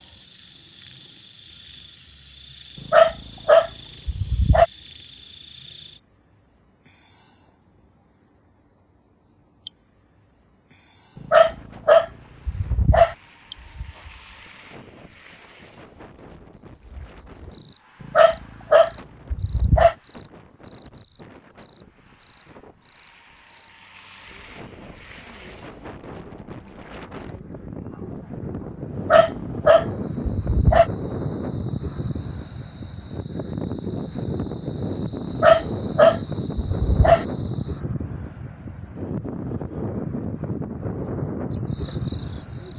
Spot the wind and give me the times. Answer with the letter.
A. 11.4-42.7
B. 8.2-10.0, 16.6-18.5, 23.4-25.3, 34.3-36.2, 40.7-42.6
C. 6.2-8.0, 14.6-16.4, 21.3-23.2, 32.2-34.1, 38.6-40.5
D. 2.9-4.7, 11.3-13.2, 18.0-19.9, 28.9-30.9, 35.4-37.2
A.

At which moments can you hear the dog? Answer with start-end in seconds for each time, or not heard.
2.9-4.7, 11.3-13.2, 18.0-19.9, 28.9-30.9, 35.4-37.2.